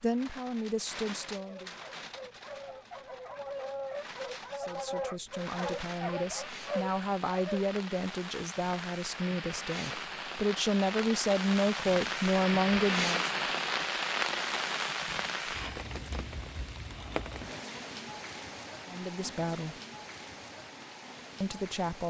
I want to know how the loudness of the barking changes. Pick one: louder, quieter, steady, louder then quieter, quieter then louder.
louder.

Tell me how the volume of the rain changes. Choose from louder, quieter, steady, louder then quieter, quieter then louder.
louder then quieter.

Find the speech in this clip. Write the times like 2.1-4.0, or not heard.
0.0-1.8, 4.5-13.3, 18.9-19.8, 21.4-22.0.